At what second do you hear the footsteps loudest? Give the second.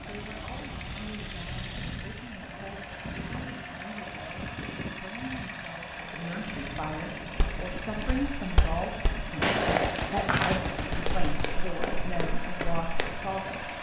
10 s.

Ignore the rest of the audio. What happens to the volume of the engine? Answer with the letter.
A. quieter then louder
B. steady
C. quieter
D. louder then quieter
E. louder
B.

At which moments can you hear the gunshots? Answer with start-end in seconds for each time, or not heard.
9.7-11.8.